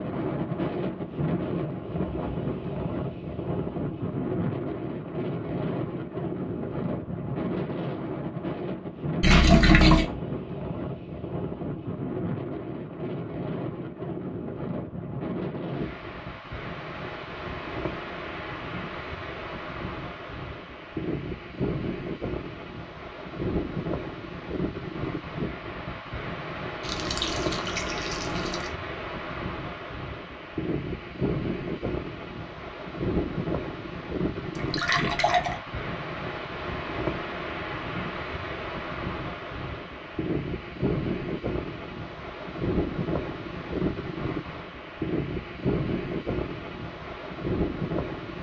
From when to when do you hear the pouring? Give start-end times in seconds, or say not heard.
9.2-10.1, 26.8-28.7, 34.5-35.5.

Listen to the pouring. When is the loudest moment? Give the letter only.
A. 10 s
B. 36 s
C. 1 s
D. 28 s
A.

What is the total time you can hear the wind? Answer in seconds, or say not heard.
48 s.